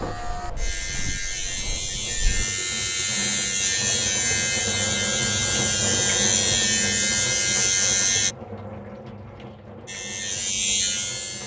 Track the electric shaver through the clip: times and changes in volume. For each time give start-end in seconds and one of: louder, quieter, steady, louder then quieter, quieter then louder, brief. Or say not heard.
0.0-8.3 louder
9.8-11.4 brief.